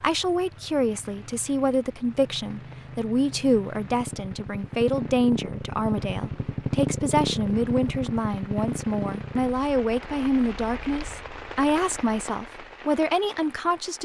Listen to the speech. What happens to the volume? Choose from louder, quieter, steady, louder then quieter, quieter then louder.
steady.